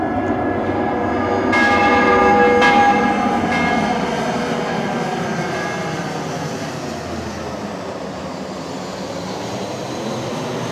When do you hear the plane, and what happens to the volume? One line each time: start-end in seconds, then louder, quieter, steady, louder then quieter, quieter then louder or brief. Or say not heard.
0.0-10.6 quieter.